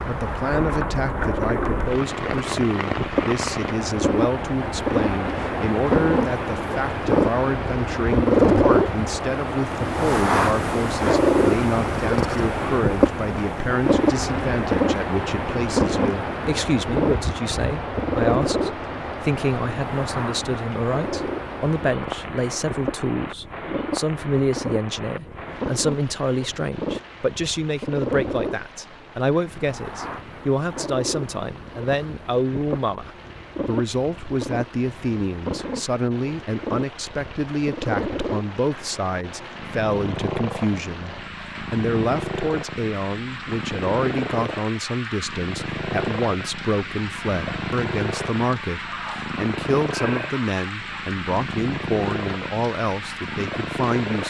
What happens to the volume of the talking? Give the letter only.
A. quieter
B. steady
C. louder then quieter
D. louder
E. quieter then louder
B.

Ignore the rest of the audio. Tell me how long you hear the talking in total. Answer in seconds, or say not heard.
54 s.